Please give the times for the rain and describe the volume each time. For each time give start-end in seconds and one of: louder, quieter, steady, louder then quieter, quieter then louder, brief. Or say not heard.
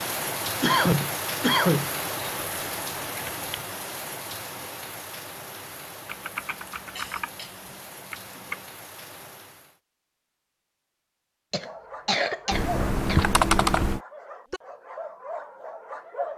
0.0-9.8 quieter.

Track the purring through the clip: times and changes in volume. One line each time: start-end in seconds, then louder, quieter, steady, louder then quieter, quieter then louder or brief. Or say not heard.
not heard.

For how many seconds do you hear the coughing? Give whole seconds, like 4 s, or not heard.
4 s.